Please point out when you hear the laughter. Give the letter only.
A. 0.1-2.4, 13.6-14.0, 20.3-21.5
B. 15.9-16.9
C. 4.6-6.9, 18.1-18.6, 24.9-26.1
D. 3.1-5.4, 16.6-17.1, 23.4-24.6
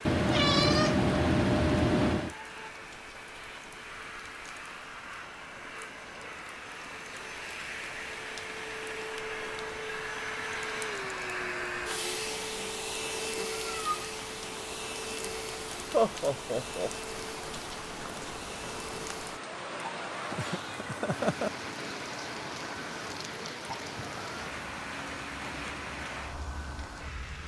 B.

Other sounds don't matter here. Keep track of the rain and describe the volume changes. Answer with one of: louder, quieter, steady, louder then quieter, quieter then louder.
louder.